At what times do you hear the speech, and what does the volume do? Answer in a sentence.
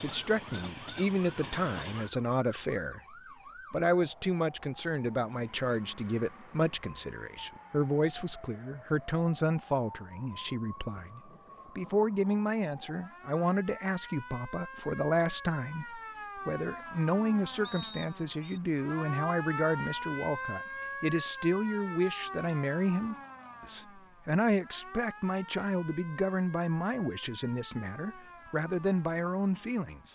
The speech can be heard from 0.0 to 30.0 s, at a steady volume.